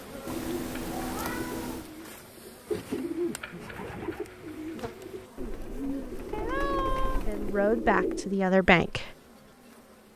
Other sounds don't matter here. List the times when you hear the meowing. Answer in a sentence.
You can hear the meowing from 0.2 to 1.9 s and from 6.3 to 7.3 s.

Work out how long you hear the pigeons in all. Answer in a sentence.
The pigeons can be heard for 8 seconds in total.